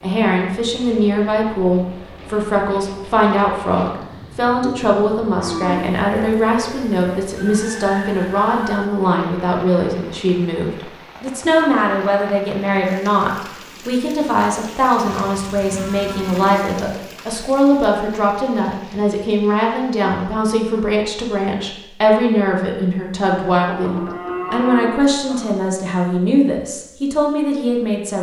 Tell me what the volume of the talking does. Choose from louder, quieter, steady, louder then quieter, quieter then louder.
steady.